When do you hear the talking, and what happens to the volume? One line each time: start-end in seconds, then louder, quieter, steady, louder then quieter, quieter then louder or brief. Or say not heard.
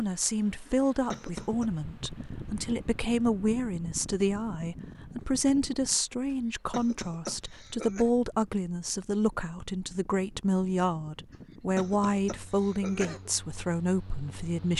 0.0-14.7 steady.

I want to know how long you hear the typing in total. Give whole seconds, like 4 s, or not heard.
not heard.